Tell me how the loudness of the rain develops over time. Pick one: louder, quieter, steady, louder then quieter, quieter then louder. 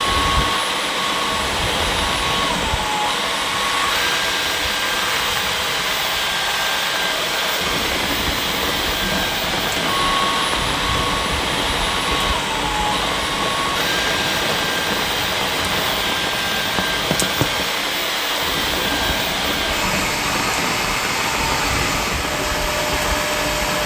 steady.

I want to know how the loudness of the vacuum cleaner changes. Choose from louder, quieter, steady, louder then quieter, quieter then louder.
steady.